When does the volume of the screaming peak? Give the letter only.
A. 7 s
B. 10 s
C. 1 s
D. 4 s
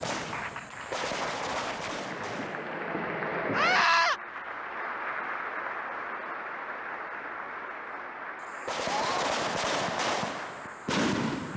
D.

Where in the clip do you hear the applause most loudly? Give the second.
3 s.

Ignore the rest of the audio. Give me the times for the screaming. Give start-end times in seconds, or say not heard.
3.5-4.2, 8.8-9.3.